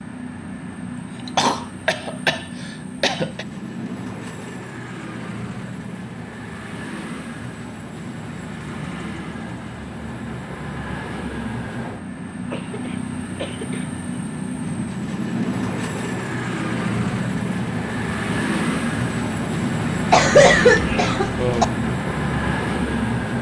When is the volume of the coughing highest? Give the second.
21 s.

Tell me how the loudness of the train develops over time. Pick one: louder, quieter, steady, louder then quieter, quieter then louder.
louder.